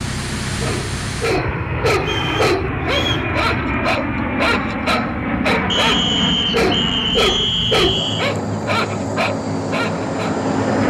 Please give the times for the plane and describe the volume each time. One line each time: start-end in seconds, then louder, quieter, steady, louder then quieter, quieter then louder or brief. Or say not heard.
0.0-10.8 steady.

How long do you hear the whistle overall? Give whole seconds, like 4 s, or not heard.
4 s.